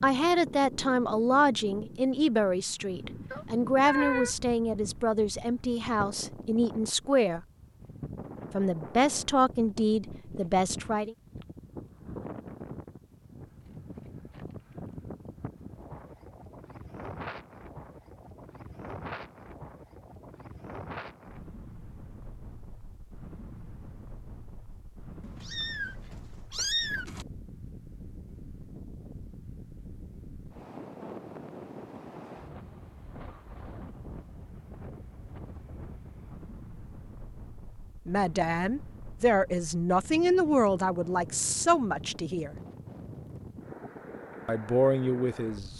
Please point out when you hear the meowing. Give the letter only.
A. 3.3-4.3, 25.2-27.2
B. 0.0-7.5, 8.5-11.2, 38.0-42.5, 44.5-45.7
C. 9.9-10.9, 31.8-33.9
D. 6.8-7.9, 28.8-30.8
A.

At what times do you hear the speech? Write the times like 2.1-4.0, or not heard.
0.0-7.5, 8.5-11.2, 38.0-42.5, 44.5-45.7.